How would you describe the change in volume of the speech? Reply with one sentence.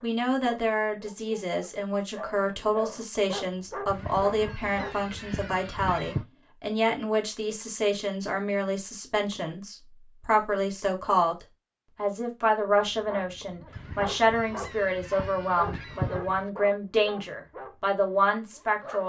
The loudness of the speech stays about the same.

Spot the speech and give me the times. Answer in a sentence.
You can hear the speech from 0.0 to 19.0 s.